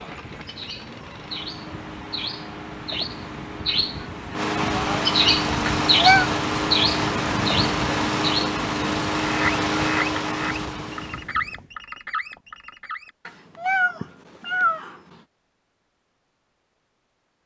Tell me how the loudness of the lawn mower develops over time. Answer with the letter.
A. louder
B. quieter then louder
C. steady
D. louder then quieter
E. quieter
A.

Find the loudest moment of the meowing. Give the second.
6 s.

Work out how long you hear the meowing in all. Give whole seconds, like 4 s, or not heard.
2 s.